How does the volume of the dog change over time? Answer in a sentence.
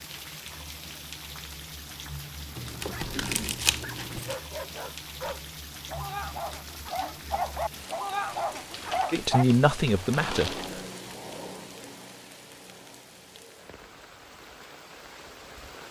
The volume of the dog goes up.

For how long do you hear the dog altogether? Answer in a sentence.
The dog can be heard for 7 seconds in total.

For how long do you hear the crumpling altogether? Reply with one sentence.
You can hear the crumpling for 4 seconds altogether.